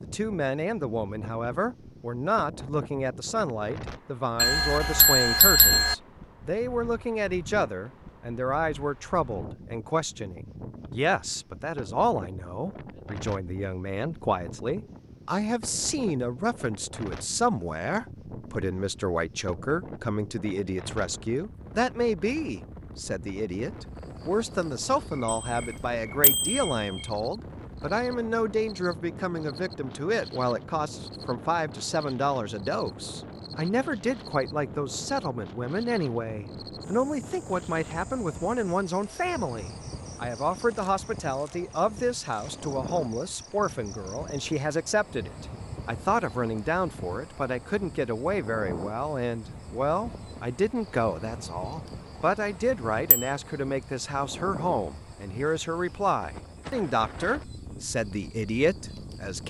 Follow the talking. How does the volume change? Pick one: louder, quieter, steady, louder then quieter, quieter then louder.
steady.